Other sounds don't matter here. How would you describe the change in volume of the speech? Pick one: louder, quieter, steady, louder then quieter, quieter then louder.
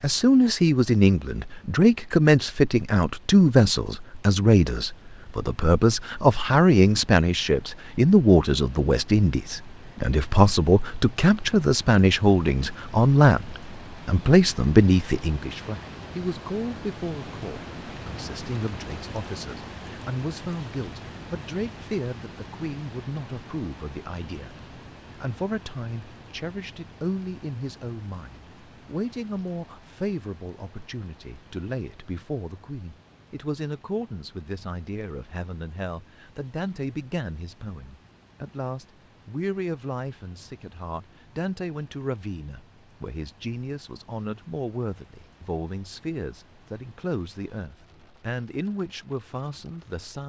quieter.